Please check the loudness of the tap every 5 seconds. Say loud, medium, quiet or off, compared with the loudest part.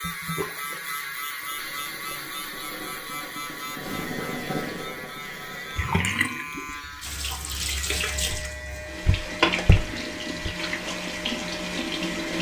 medium, loud, loud.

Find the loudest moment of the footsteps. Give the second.
10 s.